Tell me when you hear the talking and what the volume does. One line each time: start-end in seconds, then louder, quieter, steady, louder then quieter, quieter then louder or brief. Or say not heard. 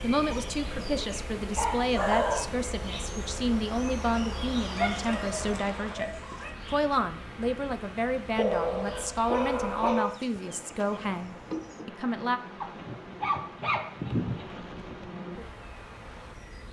0.0-12.4 steady.